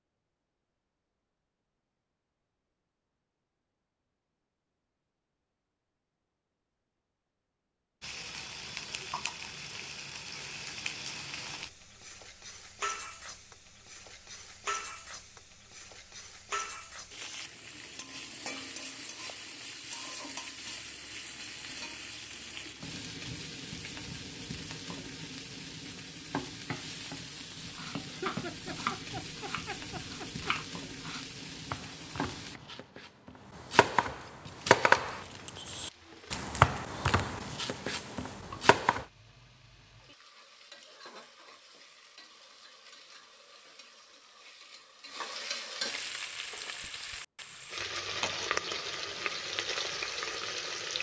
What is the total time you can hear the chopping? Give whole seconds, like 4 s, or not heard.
11 s.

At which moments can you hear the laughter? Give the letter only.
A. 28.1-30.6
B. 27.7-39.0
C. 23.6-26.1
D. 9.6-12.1
A.